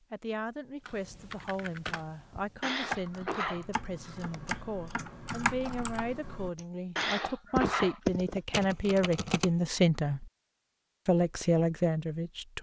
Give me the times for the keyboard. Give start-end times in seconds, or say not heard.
0.8-9.5.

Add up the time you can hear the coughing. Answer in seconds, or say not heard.
3 s.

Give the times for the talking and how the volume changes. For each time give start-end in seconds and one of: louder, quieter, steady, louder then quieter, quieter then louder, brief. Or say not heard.
0.1-10.2 louder
11.1-12.5 brief.